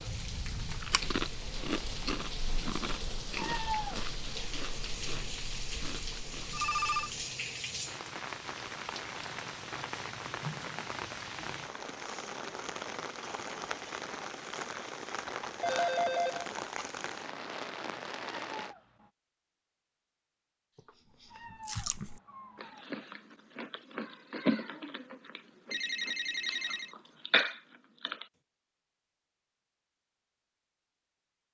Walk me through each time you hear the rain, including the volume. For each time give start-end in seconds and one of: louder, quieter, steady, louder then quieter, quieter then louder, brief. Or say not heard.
0.0-18.8 steady.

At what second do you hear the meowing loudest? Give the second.
4 s.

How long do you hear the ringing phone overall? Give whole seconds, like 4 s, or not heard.
3 s.